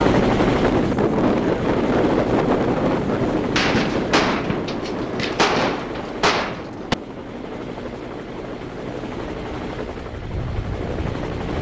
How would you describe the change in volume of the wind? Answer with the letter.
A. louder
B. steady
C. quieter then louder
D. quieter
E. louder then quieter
D.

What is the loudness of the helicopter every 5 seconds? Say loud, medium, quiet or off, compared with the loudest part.
loud, medium, medium.